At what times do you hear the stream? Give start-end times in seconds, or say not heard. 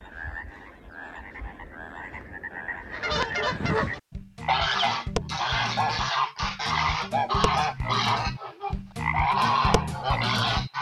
not heard.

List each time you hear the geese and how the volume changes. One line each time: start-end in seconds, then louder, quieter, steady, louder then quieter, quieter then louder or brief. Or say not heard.
2.9-10.7 steady.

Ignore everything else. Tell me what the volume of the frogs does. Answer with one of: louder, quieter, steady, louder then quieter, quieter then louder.
louder.